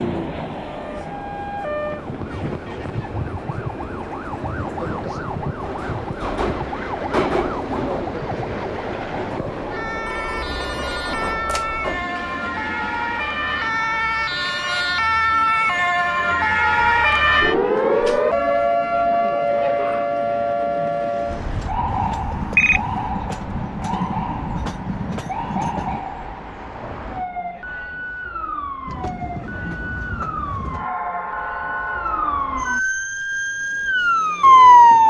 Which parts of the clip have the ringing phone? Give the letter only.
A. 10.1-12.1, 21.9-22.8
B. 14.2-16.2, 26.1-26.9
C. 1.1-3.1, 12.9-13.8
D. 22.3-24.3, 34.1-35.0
A.